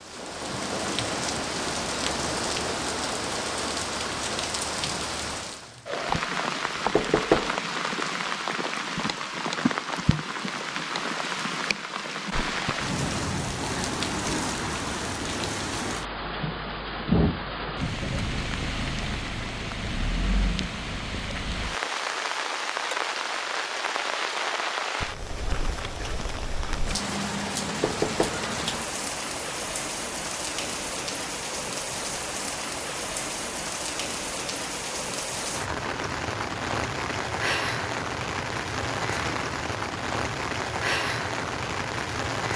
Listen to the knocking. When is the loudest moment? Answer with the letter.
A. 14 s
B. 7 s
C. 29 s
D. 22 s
B.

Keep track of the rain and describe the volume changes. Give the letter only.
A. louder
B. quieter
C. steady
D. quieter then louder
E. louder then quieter
C.